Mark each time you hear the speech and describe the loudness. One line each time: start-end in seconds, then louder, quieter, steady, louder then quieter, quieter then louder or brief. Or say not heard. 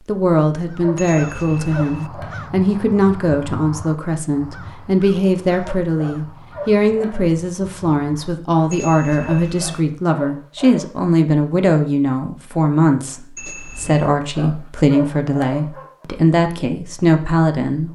0.1-17.9 steady.